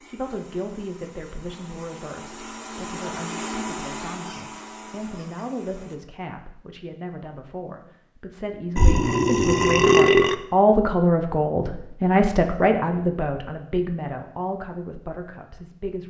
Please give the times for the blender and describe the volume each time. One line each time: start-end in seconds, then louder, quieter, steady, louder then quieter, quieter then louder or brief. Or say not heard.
0.0-6.0 louder then quieter.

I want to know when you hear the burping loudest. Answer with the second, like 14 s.
10 s.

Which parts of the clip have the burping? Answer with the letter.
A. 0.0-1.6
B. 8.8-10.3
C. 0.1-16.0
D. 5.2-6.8
B.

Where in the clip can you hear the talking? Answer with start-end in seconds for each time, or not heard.
0.1-16.0.